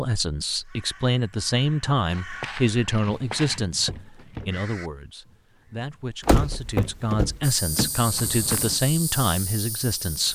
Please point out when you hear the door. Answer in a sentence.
You can hear the door from 6.2 to 7.9 s.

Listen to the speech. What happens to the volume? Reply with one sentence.
The volume of the speech goes down, then up.